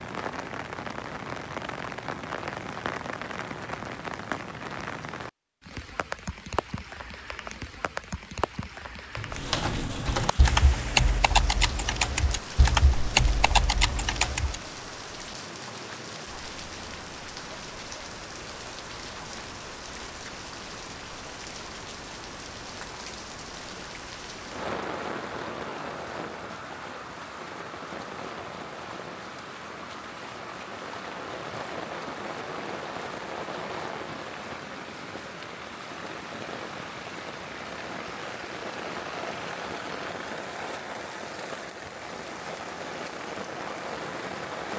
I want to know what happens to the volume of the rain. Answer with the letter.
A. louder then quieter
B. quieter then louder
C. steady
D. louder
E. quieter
C.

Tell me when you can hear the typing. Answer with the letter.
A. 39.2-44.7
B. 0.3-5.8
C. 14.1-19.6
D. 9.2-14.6
D.